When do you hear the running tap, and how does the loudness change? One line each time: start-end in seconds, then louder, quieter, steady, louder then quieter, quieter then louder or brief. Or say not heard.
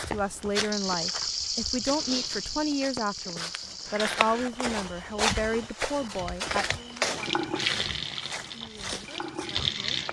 0.0-4.5 quieter
7.2-10.0 brief.